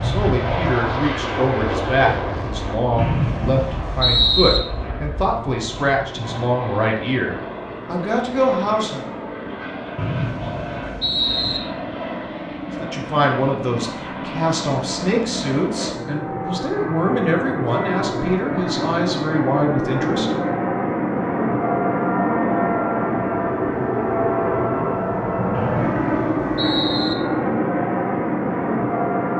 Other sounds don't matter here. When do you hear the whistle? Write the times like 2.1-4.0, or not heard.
3.0-4.6, 9.9-11.6, 25.5-27.1.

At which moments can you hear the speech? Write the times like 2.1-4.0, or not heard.
0.0-9.1, 12.8-20.3.